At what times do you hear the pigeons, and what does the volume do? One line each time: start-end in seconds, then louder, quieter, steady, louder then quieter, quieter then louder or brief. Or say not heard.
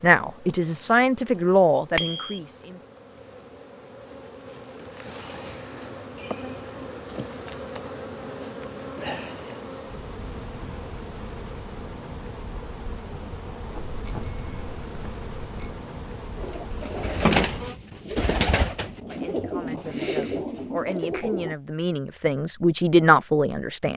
16.4-21.6 quieter.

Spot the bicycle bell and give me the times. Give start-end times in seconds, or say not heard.
1.9-2.4, 13.8-15.8.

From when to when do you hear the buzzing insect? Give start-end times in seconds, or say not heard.
0.0-17.8.